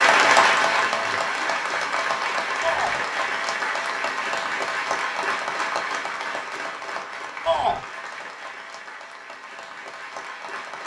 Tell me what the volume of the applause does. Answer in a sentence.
The volume of the applause goes down.